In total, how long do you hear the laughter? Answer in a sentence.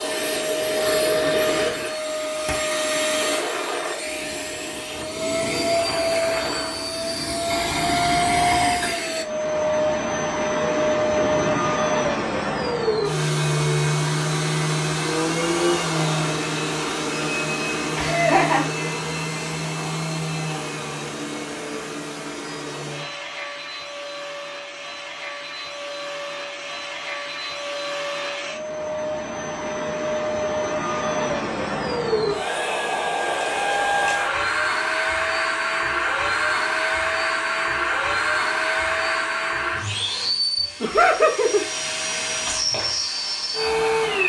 The laughter can be heard for 3 seconds in total.